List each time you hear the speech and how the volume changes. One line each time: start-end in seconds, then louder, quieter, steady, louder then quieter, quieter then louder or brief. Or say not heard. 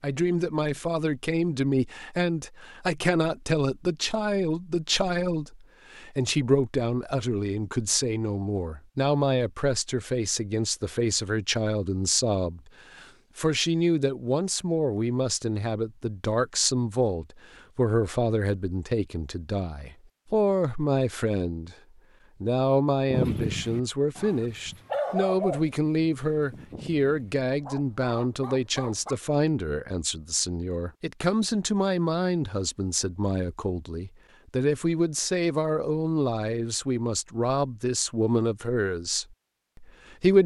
0.0-21.8 steady
22.4-40.4 steady.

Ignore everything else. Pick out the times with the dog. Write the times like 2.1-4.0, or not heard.
23.1-29.2.